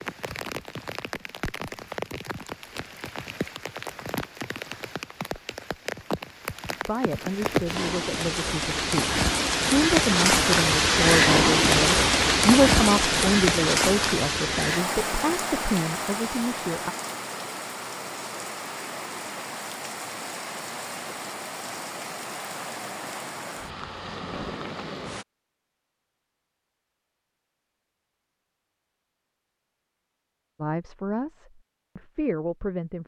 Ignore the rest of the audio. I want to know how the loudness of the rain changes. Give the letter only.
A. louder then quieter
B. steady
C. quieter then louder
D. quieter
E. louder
A.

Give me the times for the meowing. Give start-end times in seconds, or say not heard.
not heard.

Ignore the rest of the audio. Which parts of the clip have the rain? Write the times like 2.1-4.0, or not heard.
0.0-25.2.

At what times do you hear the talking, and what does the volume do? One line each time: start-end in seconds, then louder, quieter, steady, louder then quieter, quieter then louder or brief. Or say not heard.
6.8-16.9 louder then quieter
30.6-33.0 brief.